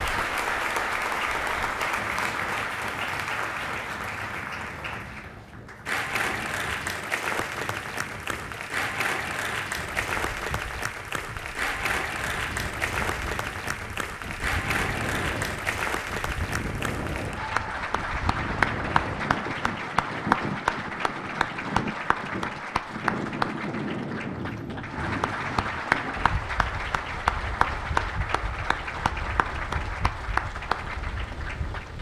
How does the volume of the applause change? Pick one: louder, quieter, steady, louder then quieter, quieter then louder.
steady.